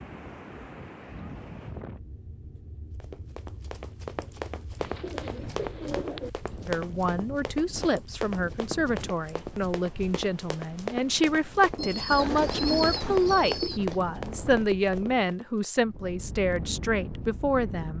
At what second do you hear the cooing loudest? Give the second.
13 s.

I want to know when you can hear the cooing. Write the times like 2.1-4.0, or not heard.
4.8-6.3, 11.8-13.8.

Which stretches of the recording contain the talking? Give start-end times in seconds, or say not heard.
6.7-17.9.